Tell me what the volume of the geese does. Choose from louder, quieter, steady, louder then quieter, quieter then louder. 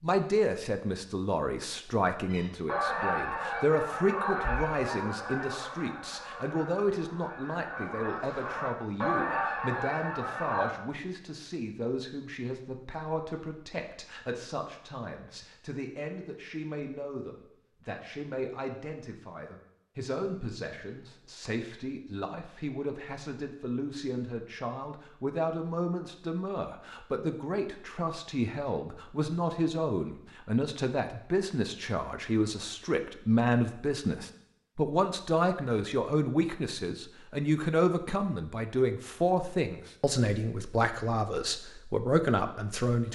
quieter then louder.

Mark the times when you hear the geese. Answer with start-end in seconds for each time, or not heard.
2.3-10.7.